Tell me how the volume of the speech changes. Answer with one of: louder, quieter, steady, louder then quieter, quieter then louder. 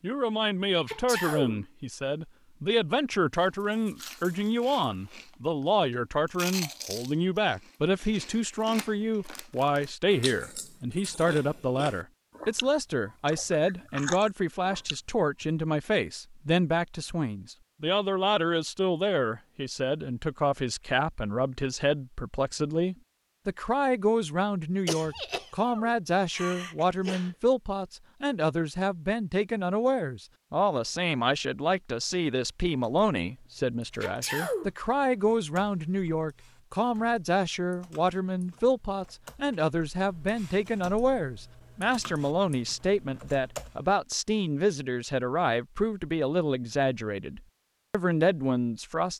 steady.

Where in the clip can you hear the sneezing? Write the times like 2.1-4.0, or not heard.
0.8-1.6, 24.9-27.6, 34.0-34.7.